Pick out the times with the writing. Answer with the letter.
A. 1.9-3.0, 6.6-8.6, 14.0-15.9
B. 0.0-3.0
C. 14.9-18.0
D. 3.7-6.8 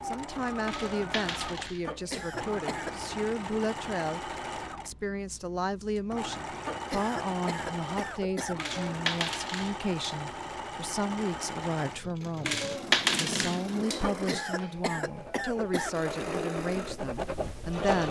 C.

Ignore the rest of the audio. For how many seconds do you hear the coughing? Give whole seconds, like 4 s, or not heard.
5 s.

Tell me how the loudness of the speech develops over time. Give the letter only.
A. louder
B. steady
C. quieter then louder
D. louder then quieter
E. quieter
B.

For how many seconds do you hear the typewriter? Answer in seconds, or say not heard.
not heard.